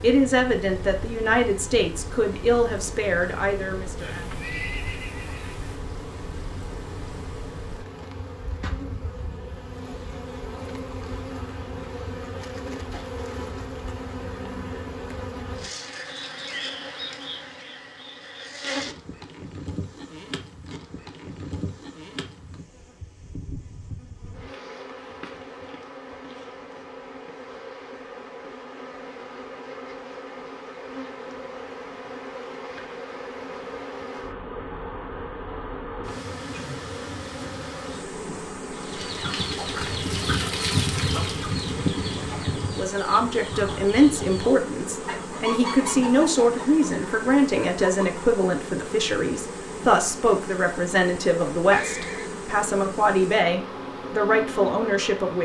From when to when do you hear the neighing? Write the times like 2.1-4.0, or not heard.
4.0-5.8, 51.7-52.4.